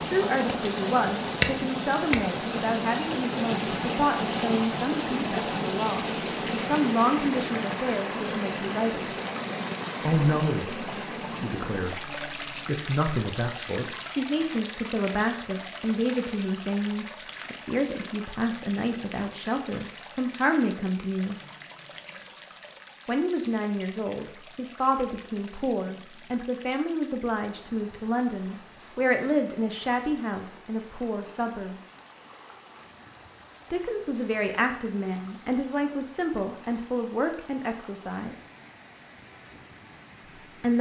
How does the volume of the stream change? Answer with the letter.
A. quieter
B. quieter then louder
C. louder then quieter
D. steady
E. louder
A.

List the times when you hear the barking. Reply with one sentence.
You can't hear the barking here.